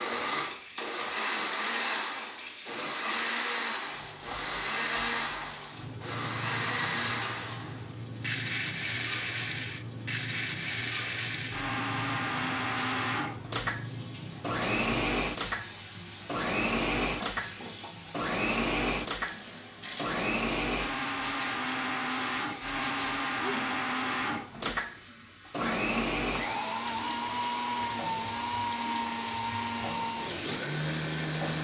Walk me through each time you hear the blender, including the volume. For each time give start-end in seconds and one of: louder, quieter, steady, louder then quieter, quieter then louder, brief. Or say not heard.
0.0-31.6 steady.